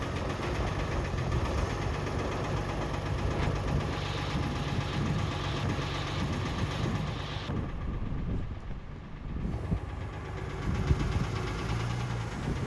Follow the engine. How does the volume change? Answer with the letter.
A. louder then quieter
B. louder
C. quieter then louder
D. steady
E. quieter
C.